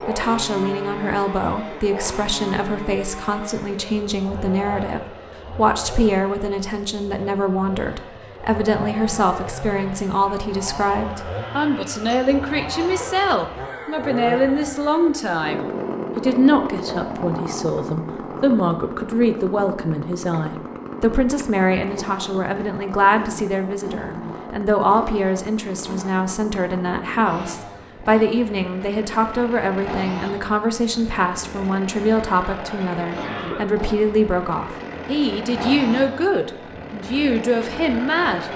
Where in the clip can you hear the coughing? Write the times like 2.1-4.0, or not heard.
12.1-13.1, 33.0-33.6.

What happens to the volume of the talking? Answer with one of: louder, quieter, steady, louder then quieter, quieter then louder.
steady.